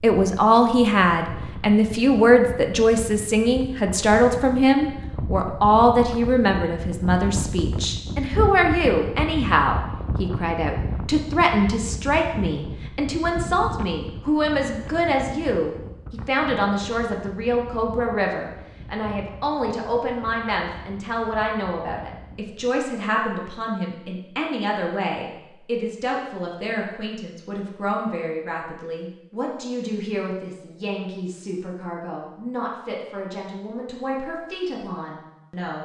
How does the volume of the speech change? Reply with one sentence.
The loudness of the speech goes down.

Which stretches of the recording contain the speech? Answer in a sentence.
You can hear the speech from 0.0 to 35.8 s.